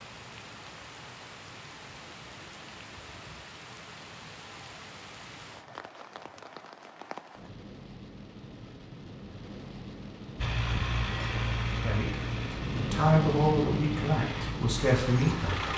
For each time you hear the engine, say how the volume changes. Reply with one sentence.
You can hear the engine from 10.3 to 15.7 s, getting quieter.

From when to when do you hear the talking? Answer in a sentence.
The talking can be heard from 11.8 to 15.6 s.